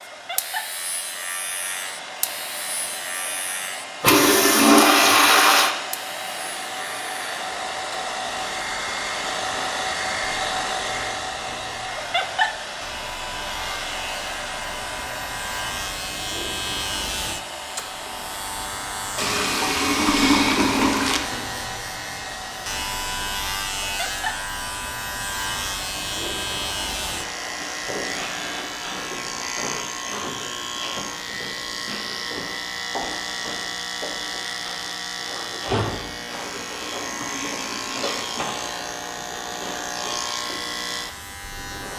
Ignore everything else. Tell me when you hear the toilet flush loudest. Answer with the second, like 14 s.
5 s.